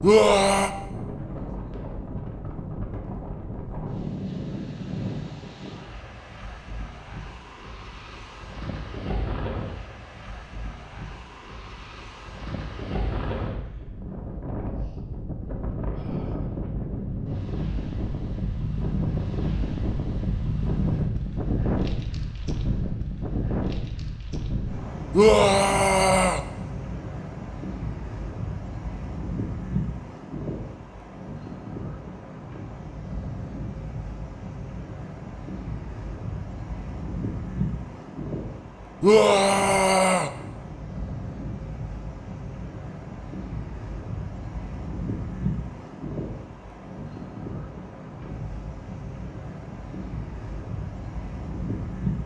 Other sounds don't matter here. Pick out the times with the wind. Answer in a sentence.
You can hear the wind from 0.0 to 52.2 s.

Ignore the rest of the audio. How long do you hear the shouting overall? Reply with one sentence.
The shouting can be heard for 3 seconds in total.